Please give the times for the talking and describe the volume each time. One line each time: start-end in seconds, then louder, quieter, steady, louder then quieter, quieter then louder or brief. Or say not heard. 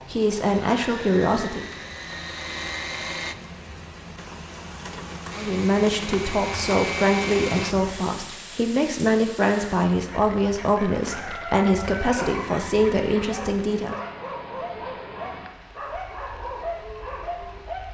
0.1-1.6 brief
5.3-13.9 steady.